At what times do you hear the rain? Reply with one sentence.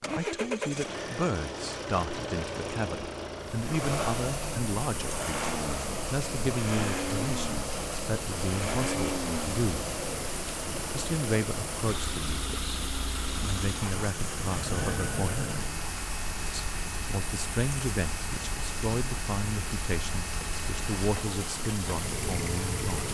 You can hear the rain from 3.4 to 23.0 s.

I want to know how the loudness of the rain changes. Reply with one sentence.
The volume of the rain stays about the same.